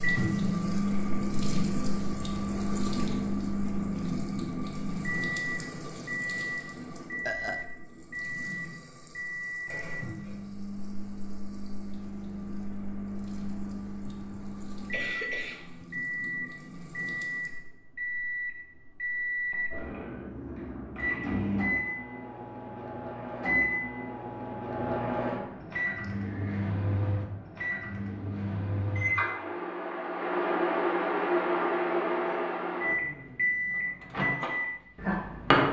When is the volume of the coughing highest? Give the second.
15 s.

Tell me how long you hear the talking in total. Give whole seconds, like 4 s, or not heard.
not heard.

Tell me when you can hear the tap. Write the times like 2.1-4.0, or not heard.
0.0-17.7.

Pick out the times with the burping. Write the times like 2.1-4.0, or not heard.
7.2-7.7.